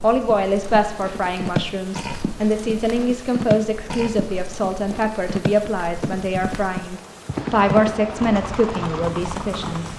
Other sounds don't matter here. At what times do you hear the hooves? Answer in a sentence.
The hooves can be heard from 0.4 to 9.9 s.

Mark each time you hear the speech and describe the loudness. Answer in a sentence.
The speech can be heard from 0.0 to 9.8 s, at a steady volume.